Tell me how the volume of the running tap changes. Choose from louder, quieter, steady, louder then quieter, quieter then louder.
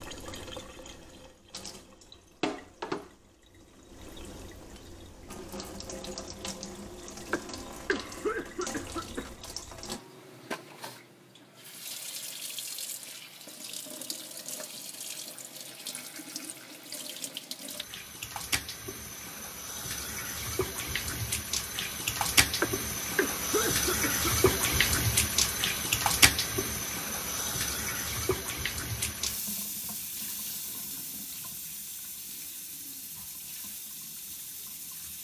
louder then quieter.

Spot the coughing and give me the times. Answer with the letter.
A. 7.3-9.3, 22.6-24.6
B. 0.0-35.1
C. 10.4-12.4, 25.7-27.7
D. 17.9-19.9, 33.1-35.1
A.